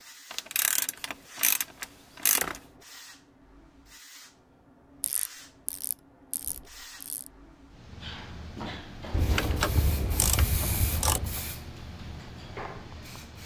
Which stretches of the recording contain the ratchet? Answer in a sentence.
You can hear the ratchet from 0.3 to 2.6 s, from 5.0 to 7.3 s and from 9.1 to 11.4 s.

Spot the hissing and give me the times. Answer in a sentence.
The hissing can be heard from 0.0 to 13.4 s.